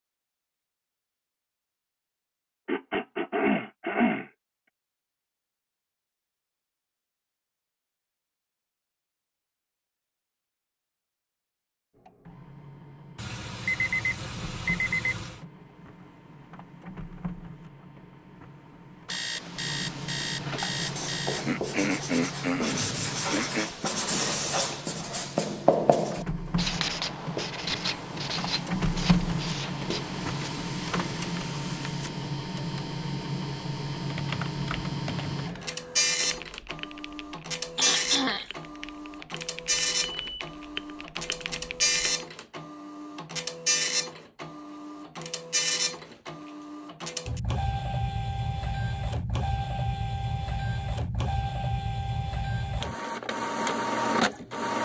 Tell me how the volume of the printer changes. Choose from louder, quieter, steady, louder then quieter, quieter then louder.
louder.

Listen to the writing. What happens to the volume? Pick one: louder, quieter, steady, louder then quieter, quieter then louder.
louder then quieter.